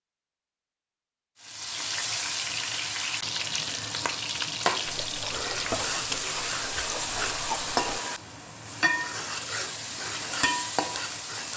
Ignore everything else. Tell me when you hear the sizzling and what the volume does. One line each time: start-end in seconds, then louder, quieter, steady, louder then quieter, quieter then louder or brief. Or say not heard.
1.4-11.5 steady.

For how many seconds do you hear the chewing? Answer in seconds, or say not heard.
3 s.